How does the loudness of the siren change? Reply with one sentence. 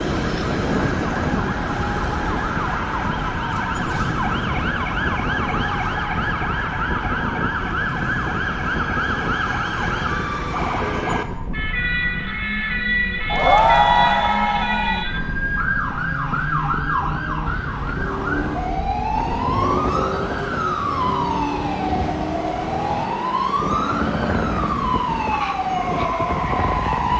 The loudness of the siren stays about the same.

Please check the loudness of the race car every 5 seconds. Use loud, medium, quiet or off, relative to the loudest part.
loud, medium, medium, loud, loud, loud.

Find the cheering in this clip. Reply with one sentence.
You can hear the cheering from 13.3 to 15.1 s.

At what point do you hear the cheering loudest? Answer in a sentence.
The loudest moment of the cheering is at 14 seconds.